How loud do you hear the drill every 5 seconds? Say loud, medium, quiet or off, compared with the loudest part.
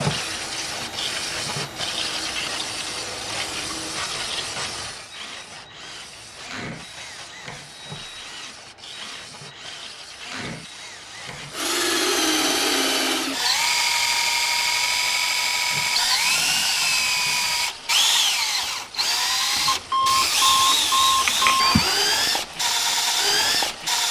quiet, quiet, loud, loud, loud.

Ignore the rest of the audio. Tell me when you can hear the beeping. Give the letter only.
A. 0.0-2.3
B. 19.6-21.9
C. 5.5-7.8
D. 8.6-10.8
B.